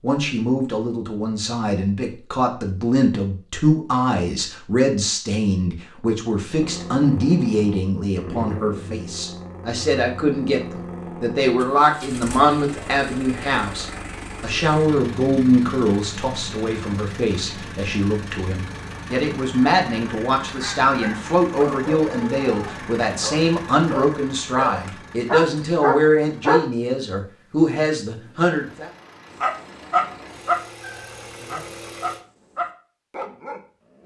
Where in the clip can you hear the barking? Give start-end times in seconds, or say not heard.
20.6-26.6, 29.4-34.0.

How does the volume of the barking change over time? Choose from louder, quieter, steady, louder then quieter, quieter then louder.
louder then quieter.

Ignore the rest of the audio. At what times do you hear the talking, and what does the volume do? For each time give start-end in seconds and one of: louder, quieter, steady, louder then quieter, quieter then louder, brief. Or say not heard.
0.0-28.9 steady.